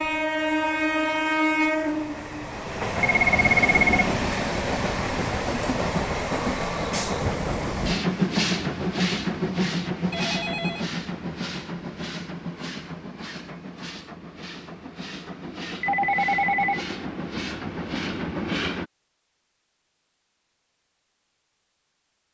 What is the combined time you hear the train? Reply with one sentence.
The train can be heard for 19 seconds in total.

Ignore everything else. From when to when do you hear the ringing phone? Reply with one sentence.
The ringing phone can be heard from 3.0 to 3.9 s, from 10.1 to 10.9 s and from 15.8 to 16.8 s.